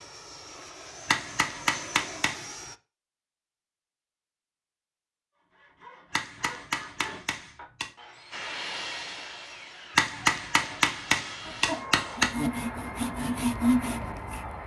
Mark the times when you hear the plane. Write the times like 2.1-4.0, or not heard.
0.0-2.8, 8.3-14.6.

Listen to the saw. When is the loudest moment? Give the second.
14 s.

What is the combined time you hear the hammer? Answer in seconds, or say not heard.
6 s.